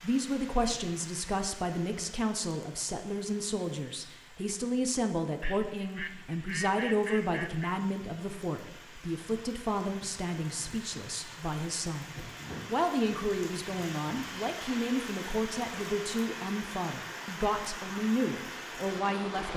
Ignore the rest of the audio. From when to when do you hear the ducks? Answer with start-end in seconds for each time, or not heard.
5.4-7.8.